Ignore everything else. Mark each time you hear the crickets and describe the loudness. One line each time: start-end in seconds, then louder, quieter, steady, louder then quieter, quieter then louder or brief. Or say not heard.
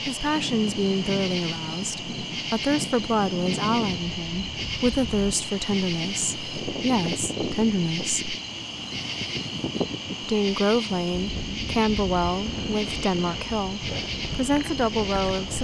0.0-15.6 steady.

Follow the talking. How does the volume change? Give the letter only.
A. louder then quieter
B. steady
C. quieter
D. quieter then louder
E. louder
B.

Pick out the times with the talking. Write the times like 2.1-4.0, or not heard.
0.1-8.3, 10.2-15.6.